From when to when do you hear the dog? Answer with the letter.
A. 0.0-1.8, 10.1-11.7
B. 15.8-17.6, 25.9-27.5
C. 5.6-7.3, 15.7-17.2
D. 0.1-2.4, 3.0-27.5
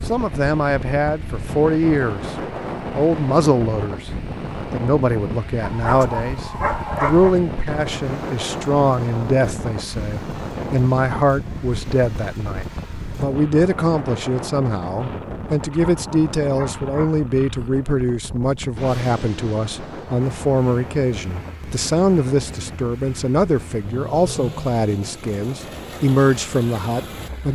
C.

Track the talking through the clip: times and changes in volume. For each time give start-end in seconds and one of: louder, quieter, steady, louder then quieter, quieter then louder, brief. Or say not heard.
0.1-2.4 brief
3.0-27.5 steady.